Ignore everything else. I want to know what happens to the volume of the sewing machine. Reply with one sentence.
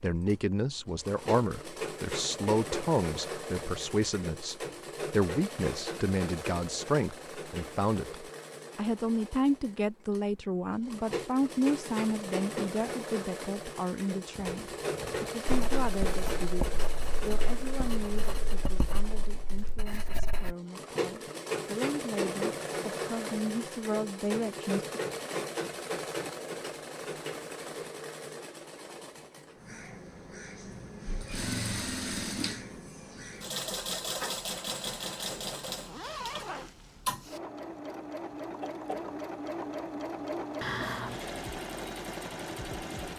The loudness of the sewing machine stays about the same.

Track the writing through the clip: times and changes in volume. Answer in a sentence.
The writing can be heard from 15.4 to 20.6 s, getting quieter.